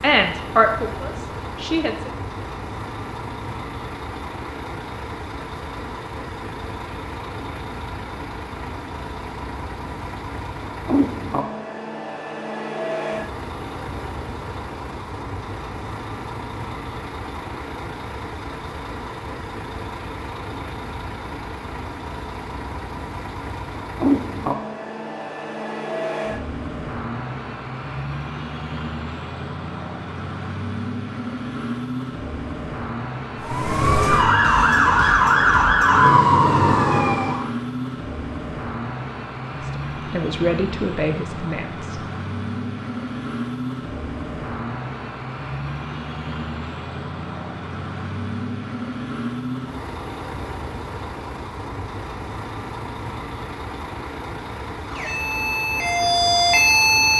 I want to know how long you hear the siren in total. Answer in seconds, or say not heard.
6 s.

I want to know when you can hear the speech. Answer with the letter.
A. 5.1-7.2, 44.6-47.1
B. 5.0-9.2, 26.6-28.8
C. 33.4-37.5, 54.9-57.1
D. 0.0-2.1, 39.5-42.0
D.